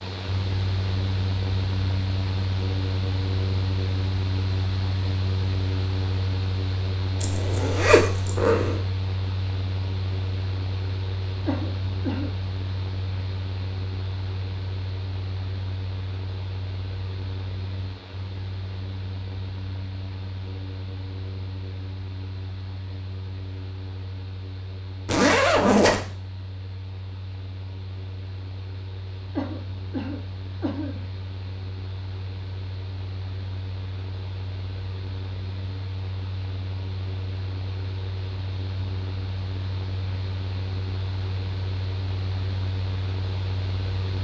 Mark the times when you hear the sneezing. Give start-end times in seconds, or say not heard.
11.4-12.3, 29.4-31.0.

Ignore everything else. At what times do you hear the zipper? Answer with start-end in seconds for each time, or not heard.
7.2-8.8, 25.1-26.0.